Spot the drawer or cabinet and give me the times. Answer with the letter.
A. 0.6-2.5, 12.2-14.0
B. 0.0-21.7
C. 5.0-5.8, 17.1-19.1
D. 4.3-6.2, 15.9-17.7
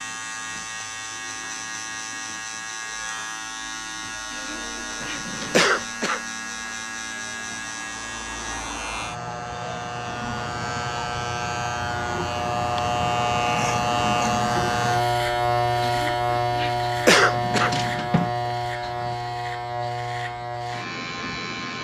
C.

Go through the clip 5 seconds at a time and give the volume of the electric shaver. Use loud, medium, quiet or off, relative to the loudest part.
medium, medium, loud, loud, medium.